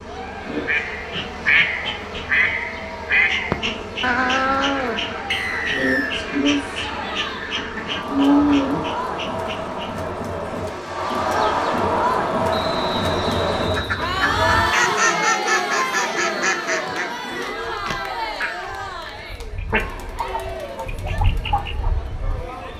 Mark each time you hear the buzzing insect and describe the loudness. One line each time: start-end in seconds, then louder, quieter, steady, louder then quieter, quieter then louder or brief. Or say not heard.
0.0-22.7 louder then quieter.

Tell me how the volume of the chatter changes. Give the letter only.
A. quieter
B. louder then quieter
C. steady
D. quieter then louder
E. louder
B.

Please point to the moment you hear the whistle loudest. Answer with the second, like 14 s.
6 s.